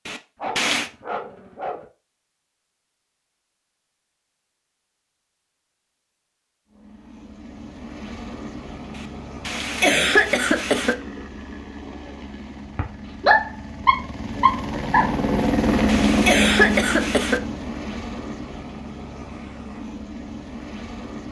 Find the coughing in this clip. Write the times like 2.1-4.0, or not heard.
0.1-0.9, 8.9-10.9, 15.4-17.4.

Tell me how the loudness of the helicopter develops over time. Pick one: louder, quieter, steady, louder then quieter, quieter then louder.
louder then quieter.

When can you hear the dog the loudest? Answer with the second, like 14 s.
13 s.